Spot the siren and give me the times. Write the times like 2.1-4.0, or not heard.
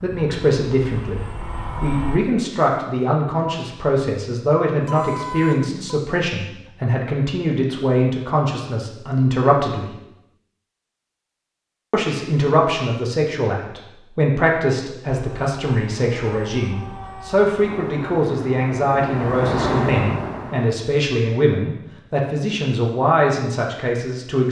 not heard.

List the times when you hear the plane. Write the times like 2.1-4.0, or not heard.
0.0-2.2, 15.2-20.8.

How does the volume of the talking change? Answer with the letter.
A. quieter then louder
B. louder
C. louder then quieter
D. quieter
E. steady
E.